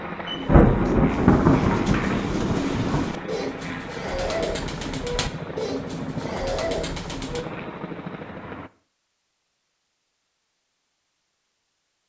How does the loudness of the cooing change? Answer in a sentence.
The loudness of the cooing stays about the same.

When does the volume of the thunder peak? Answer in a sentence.
The loudest moment of the thunder is at 1 second.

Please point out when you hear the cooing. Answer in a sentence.
The cooing can be heard from 0.2 to 7.5 s.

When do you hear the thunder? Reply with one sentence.
You can hear the thunder from 0.5 to 3.1 s.